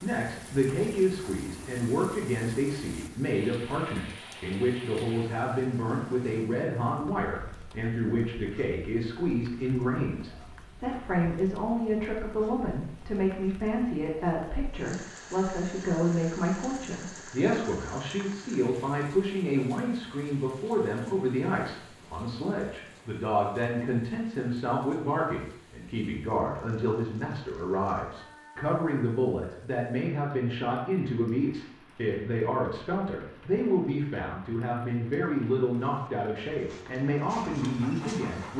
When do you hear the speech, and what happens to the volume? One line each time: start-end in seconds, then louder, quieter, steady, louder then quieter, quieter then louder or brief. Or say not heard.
0.0-38.5 steady.